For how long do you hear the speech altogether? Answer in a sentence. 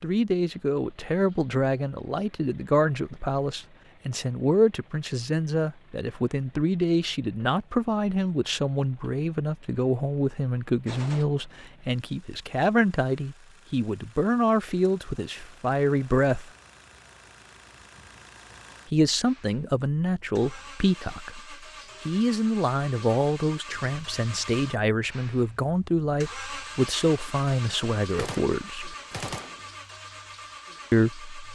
You can hear the speech for 27 seconds altogether.